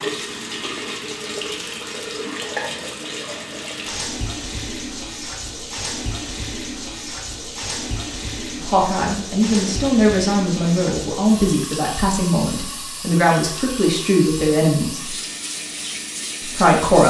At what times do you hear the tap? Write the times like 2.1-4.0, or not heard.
0.0-17.0.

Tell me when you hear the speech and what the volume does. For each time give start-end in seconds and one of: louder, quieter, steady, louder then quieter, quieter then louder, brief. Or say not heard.
8.6-15.2 steady
16.4-17.0 brief.